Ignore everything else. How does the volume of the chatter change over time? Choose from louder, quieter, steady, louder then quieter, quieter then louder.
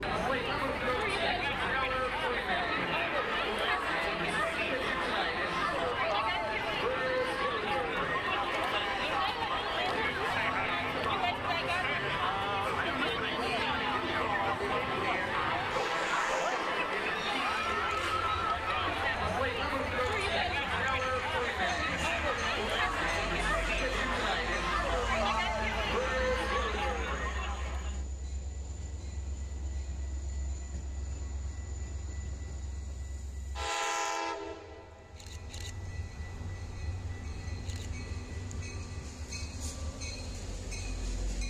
steady.